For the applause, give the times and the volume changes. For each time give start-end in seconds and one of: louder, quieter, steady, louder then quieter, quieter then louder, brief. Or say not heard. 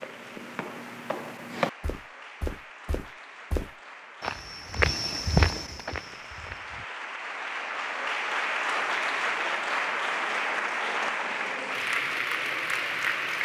0.0-13.3 louder.